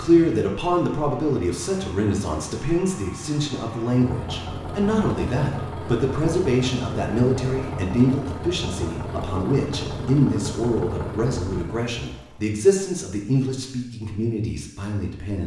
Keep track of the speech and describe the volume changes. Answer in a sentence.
The loudness of the speech stays about the same.